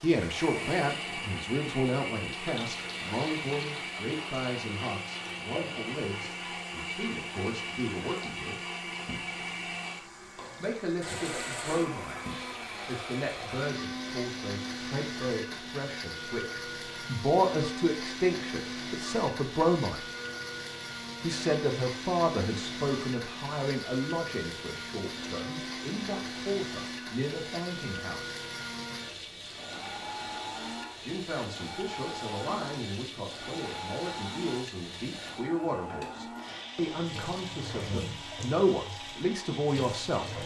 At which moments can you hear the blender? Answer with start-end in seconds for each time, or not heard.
0.1-40.4.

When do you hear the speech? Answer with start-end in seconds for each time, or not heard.
0.0-8.6, 10.6-20.0, 21.2-28.4, 31.0-40.4.